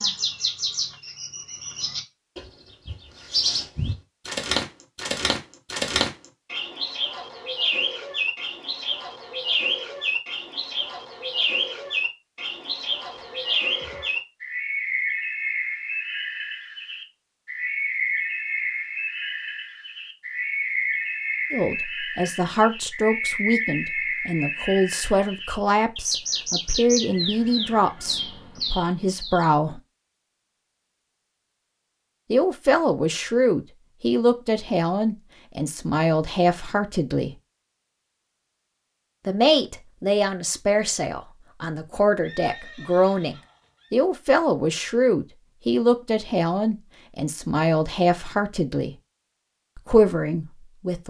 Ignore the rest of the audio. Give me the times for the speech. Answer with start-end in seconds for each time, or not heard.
21.5-29.8, 32.3-37.3, 39.2-49.0, 49.8-51.0.